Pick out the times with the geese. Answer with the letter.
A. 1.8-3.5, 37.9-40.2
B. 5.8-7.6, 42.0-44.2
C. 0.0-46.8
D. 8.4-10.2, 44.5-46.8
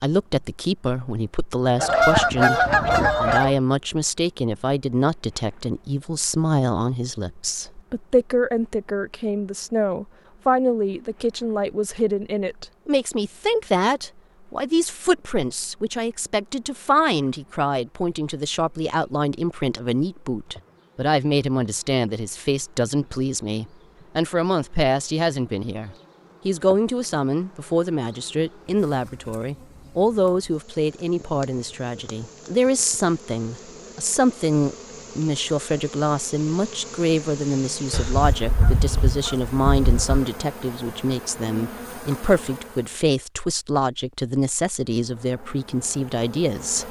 A.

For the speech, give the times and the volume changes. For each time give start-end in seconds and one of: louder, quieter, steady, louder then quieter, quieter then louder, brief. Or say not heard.
0.0-46.8 steady.